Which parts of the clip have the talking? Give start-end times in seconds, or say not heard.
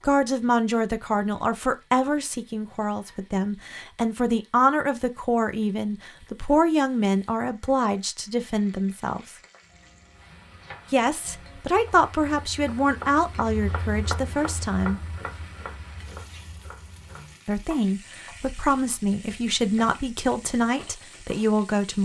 0.0-9.3, 10.9-15.0, 17.4-22.0.